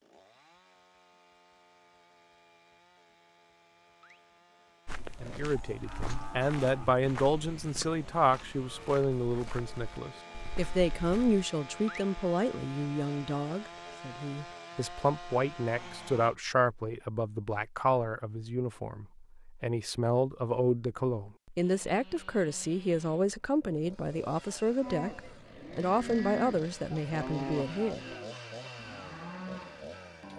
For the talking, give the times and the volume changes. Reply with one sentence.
The talking can be heard from 5.2 to 28.1 s, at a steady volume.